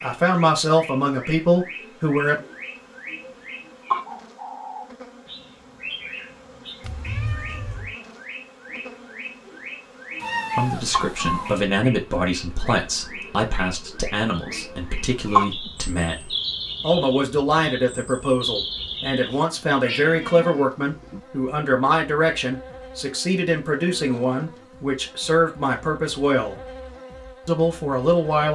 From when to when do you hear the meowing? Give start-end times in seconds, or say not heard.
6.8-8.0, 10.2-11.6, 19.3-21.2.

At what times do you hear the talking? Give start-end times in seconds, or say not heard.
0.0-2.5, 10.6-26.6, 27.4-28.5.